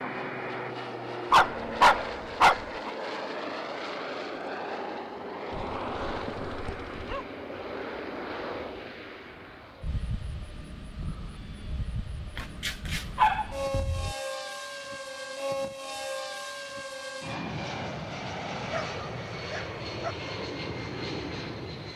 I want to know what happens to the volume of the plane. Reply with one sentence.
The loudness of the plane goes down, then up.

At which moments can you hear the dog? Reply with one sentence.
The dog can be heard from 1.3 to 2.9 s, from 5.5 to 7.2 s, from 12.3 to 14.2 s and from 18.7 to 20.1 s.